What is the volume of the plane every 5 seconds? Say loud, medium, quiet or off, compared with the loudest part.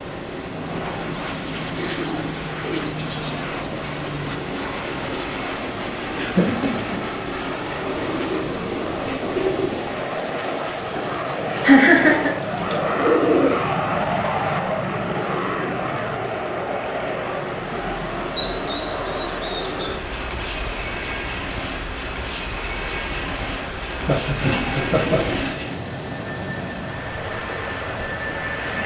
medium, medium, loud, loud, medium, medium.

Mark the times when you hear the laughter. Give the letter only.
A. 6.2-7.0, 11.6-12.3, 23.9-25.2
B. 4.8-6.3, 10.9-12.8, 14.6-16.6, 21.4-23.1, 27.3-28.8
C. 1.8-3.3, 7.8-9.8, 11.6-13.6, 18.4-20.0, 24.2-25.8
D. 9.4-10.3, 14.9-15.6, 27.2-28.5
A.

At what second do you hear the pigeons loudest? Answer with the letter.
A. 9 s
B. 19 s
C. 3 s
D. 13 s
D.